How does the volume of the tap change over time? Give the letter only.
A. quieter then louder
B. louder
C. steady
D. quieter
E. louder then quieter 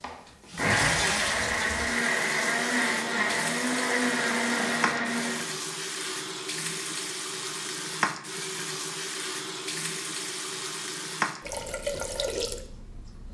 C.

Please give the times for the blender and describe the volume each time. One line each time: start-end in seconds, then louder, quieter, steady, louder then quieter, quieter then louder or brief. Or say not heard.
0.0-5.5 steady.